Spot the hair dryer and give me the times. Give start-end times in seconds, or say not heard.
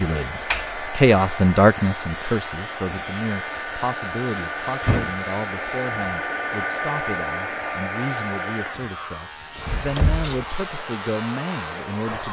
0.0-12.2.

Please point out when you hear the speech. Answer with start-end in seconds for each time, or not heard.
0.0-12.2.